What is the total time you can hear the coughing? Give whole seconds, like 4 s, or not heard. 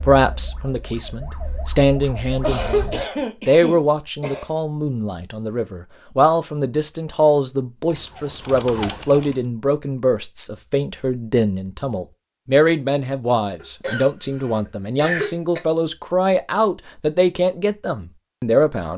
4 s.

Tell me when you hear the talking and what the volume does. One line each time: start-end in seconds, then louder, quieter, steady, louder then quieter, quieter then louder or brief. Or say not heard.
0.0-18.9 steady.